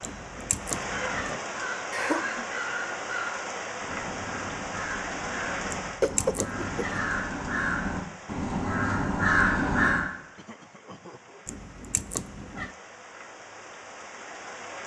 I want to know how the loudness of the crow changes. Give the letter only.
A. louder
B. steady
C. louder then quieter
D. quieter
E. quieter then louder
A.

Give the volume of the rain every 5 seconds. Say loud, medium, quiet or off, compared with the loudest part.
loud, loud, medium.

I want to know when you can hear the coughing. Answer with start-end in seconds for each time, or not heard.
1.9-2.6, 6.0-7.1, 10.3-11.4.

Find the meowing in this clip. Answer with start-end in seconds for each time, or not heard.
0.0-1.4, 5.7-7.0, 11.4-12.7.